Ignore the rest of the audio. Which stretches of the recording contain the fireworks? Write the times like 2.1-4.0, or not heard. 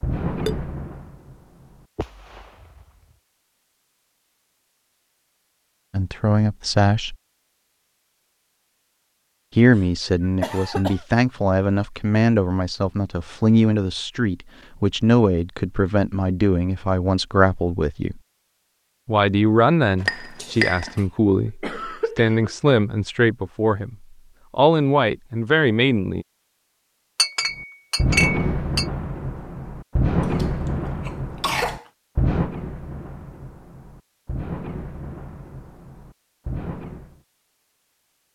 0.0-3.1, 27.6-37.2.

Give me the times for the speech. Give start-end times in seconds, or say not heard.
5.9-7.2, 9.6-18.2, 19.1-26.2.